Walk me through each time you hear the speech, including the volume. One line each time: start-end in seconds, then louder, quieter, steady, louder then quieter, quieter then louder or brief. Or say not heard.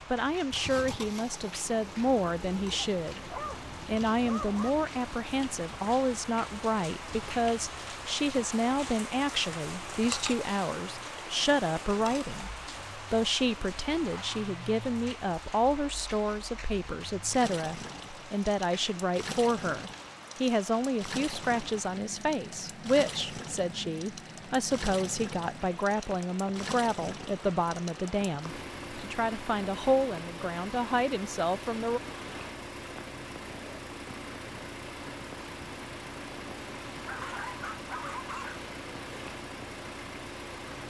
0.1-32.0 steady.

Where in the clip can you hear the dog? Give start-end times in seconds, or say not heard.
2.7-4.8, 37.0-38.6.